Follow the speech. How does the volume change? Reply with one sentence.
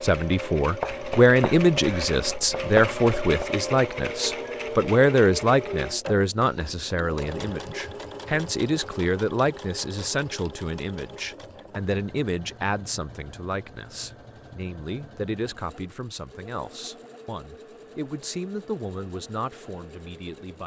The volume of the speech goes down.